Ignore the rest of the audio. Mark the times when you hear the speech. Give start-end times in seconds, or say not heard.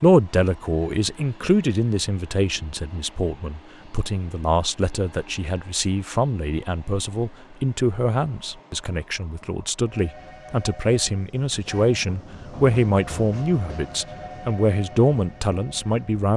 0.0-16.3.